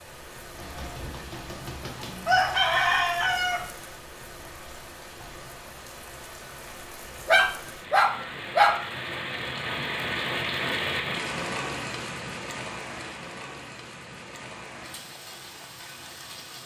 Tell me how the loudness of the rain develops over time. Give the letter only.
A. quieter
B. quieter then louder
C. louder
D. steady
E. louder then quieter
E.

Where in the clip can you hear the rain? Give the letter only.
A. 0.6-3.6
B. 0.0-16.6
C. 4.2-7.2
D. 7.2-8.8
B.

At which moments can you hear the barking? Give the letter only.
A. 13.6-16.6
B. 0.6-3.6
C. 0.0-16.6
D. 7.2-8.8
D.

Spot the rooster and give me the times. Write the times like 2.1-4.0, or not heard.
0.6-3.6.